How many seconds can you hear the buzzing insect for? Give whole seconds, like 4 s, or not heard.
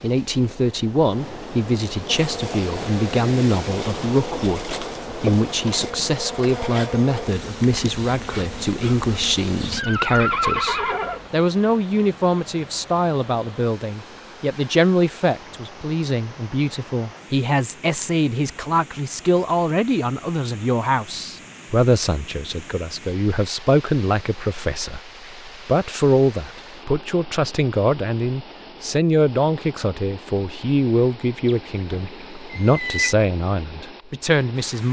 8 s.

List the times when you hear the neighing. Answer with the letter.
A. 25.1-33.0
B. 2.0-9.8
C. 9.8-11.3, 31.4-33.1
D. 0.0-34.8
C.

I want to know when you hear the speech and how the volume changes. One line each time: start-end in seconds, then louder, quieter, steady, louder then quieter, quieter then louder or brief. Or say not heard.
0.0-34.8 steady.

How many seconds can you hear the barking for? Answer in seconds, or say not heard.
not heard.